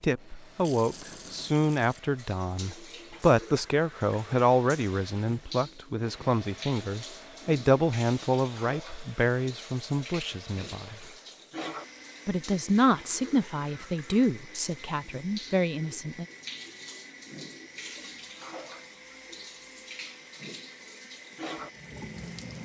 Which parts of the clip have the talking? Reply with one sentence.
You can hear the talking from 0.0 to 11.1 s and from 12.2 to 16.2 s.